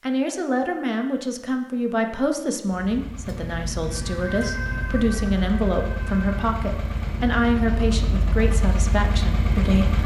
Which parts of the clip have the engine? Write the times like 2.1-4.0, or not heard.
2.6-10.0.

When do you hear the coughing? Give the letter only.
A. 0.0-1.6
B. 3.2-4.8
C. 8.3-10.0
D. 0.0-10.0
B.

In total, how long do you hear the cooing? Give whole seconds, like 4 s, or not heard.
not heard.